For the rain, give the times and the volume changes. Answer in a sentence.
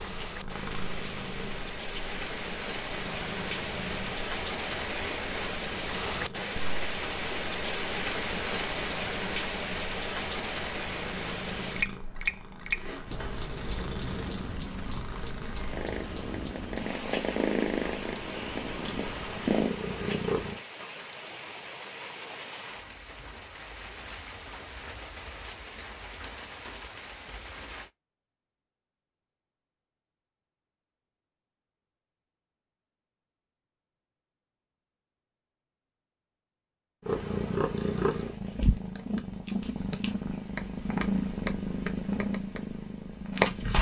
The rain can be heard from 0.0 to 27.9 s, getting quieter.